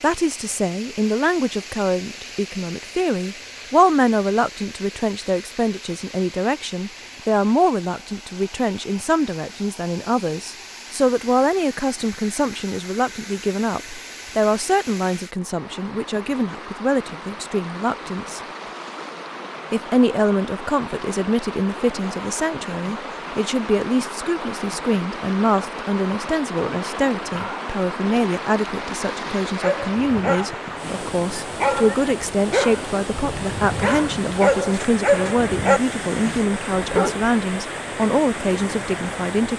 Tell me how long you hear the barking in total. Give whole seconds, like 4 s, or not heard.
8 s.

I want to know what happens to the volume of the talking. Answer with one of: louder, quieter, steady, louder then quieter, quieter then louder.
steady.